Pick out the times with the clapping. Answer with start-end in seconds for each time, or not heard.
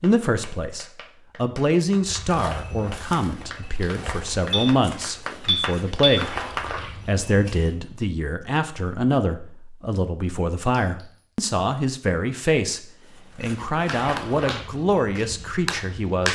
0.0-6.7, 13.8-16.3.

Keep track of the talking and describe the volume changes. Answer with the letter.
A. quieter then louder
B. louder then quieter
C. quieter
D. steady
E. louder
D.